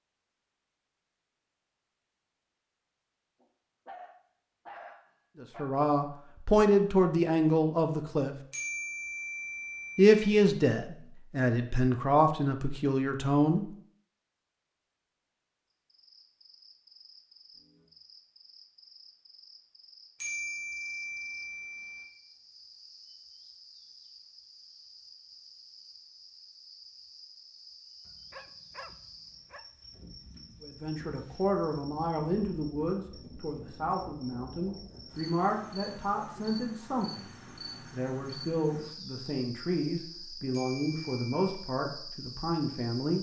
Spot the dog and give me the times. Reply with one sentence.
You can hear the dog from 3.4 to 5.8 s and from 28.1 to 29.6 s.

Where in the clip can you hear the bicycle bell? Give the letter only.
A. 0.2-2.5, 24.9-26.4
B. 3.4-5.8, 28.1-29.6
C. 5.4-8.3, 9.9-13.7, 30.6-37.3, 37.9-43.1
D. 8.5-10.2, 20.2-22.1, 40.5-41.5
D.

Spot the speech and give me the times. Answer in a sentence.
The speech can be heard from 5.4 to 8.3 s, from 9.9 to 13.7 s, from 30.6 to 37.3 s and from 37.9 to 43.1 s.